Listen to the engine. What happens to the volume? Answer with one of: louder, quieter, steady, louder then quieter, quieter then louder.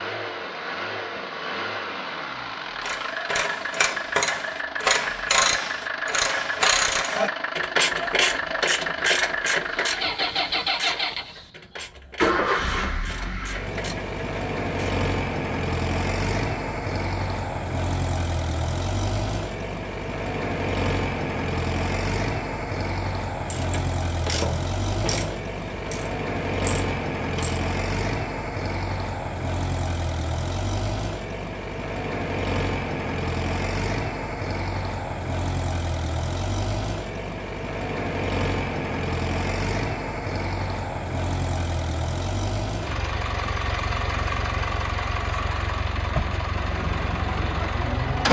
steady.